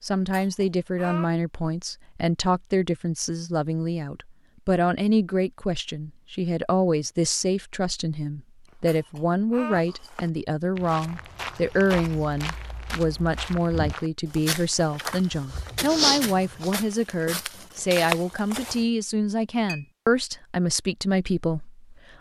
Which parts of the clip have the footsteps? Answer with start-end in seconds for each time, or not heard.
9.8-18.9.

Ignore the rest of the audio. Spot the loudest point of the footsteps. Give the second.
16 s.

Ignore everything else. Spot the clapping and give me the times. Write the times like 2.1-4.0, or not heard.
not heard.